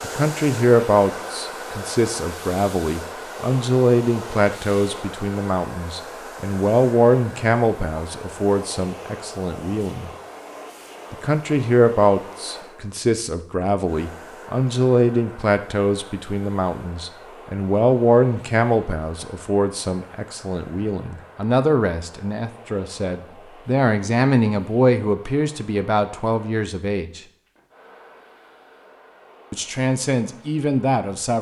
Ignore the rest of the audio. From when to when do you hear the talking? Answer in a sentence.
You can hear the talking from 0.0 to 10.1 s, from 11.1 to 27.2 s and from 29.5 to 31.3 s.